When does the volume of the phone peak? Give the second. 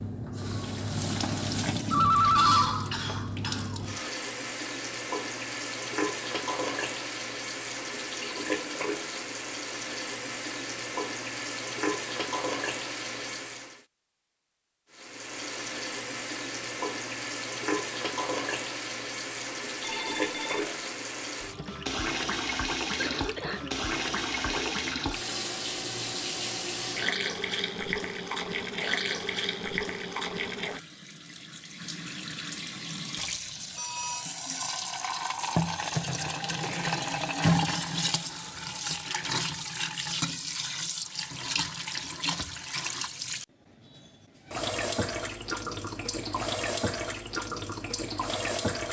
2 s.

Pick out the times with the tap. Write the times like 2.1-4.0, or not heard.
0.0-13.8, 14.9-48.8.